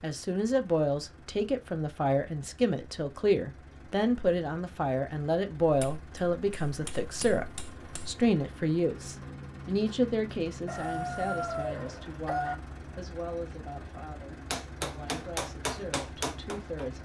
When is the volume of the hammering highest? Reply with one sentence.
The loudest moment of the hammering is at 16 seconds.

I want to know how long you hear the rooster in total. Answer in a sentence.
You can hear the rooster for 2 seconds altogether.